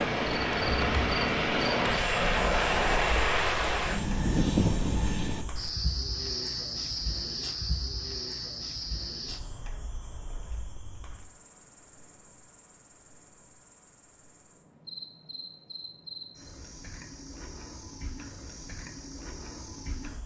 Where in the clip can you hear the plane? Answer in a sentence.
The plane can be heard from 0.0 to 5.5 s.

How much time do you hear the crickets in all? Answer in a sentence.
You can hear the crickets for 20 seconds altogether.